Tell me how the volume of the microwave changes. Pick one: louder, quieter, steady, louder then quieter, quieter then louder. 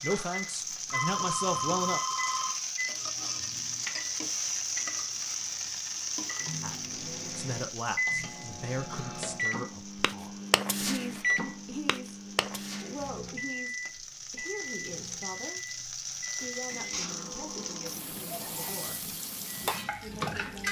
louder then quieter.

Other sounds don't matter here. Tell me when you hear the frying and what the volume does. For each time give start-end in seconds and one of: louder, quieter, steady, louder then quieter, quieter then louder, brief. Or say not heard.
0.0-20.6 quieter then louder.